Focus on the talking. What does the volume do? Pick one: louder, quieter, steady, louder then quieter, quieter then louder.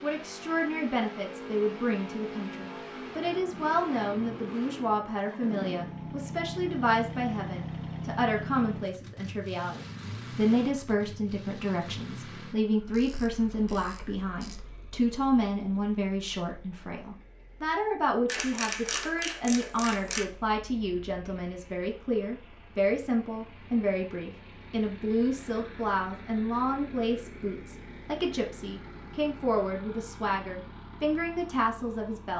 steady.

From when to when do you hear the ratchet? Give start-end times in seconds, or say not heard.
12.9-14.6, 18.2-20.2.